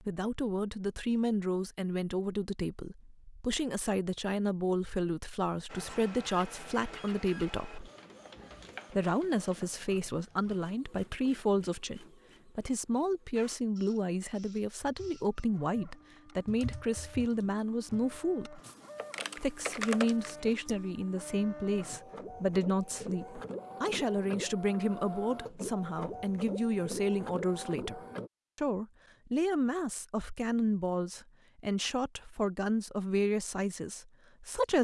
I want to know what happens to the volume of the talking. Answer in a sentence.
The loudness of the talking stays about the same.